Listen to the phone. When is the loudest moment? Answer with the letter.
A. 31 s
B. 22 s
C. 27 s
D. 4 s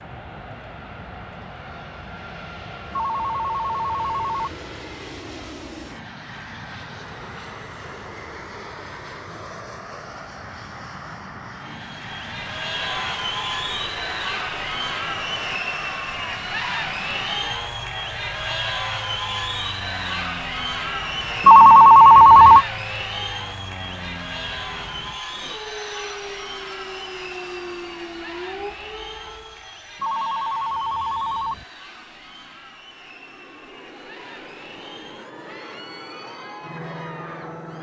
B.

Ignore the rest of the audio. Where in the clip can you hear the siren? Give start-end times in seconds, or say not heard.
25.1-29.7.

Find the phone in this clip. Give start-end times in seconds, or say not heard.
2.9-4.6, 21.4-22.6, 30.0-31.6.